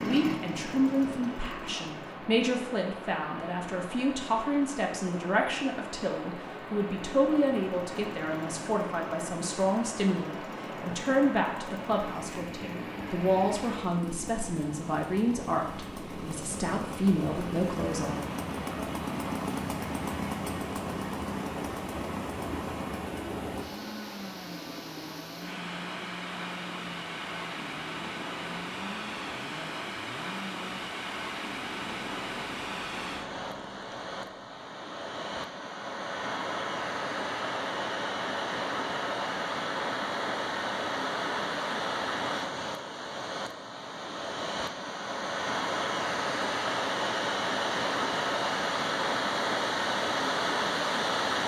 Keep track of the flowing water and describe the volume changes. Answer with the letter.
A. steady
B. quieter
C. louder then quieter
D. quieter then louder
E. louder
E.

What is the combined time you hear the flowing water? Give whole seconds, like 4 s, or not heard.
51 s.